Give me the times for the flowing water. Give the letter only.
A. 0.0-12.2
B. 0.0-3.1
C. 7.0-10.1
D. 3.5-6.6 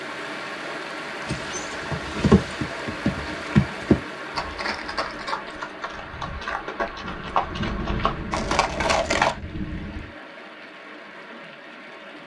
A.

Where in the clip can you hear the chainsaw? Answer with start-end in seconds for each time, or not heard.
not heard.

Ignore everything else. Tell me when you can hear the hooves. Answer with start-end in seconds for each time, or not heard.
1.2-9.3.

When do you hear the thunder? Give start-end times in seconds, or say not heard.
7.0-10.1.